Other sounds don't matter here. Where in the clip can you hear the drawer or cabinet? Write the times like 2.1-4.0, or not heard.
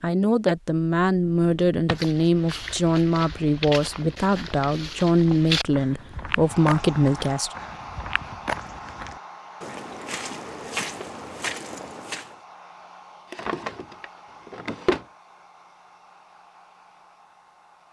1.2-2.0, 13.3-15.1.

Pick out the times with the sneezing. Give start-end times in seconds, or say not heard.
not heard.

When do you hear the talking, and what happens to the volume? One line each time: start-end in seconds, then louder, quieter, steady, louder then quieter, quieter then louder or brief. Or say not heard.
0.0-7.5 steady.